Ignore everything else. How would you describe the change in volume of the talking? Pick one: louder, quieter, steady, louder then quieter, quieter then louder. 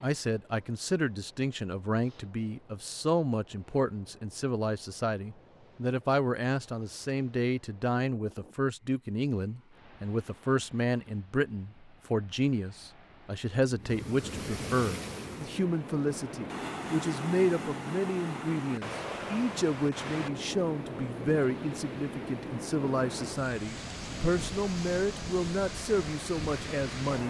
steady.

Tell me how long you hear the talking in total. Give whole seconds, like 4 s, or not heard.
27 s.